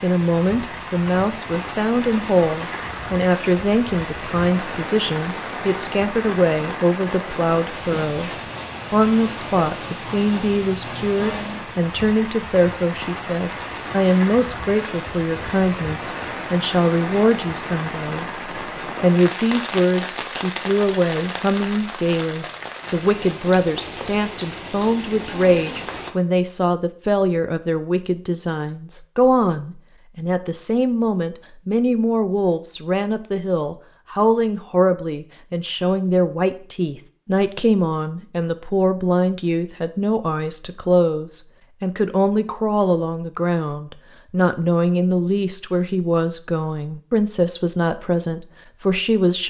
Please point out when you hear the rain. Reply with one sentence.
The rain can be heard from 0.0 to 26.1 s.